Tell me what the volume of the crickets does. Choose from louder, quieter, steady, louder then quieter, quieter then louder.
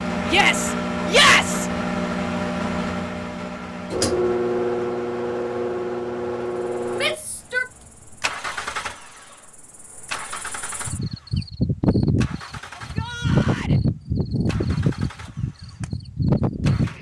louder.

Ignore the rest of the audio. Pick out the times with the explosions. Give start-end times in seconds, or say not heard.
not heard.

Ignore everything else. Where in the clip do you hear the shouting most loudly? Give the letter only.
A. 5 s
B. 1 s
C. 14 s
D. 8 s
B.